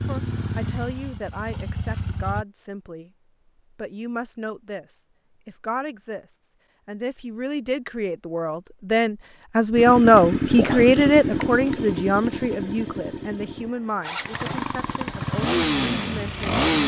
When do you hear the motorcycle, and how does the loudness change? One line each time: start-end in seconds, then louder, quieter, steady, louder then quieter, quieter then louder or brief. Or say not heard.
0.0-2.5 brief
9.8-16.8 quieter then louder.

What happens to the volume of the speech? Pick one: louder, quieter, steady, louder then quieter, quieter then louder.
louder then quieter.